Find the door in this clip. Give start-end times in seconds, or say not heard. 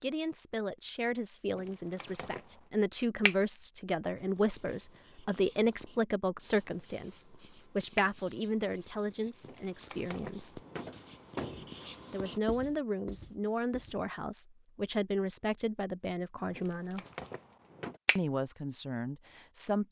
1.5-2.6, 9.4-11.8, 16.5-18.0.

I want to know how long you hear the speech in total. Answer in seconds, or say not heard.
17 s.